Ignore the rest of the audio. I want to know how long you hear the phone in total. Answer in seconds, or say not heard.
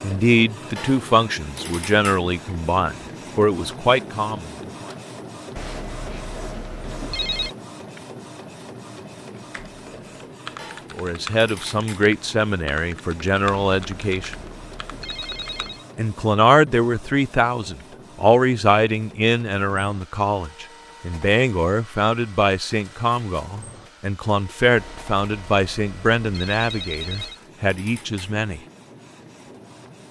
7 s.